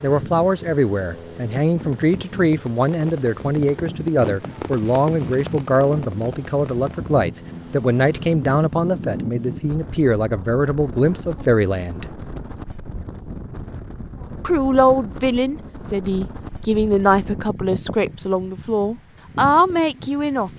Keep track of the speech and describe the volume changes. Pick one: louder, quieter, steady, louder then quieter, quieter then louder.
steady.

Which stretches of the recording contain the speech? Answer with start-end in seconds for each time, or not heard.
0.0-12.1, 14.4-20.5.